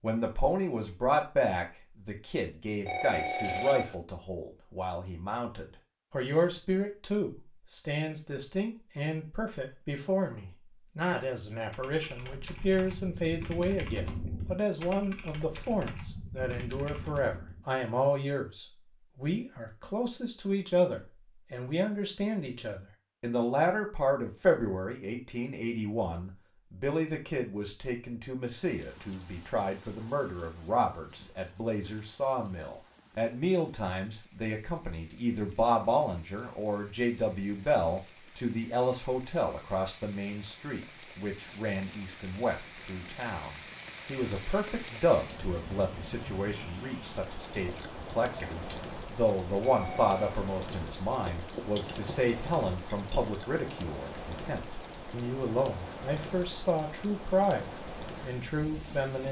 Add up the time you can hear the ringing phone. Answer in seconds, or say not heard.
2 s.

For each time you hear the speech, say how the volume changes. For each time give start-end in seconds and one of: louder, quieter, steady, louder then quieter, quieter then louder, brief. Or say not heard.
0.0-59.2 steady.